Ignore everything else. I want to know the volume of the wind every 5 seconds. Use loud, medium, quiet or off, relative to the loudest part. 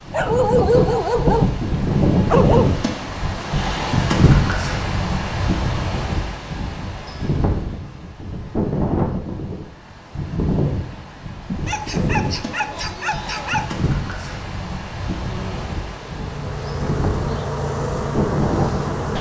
loud, medium, medium, medium.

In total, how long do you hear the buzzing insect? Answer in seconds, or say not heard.
4 s.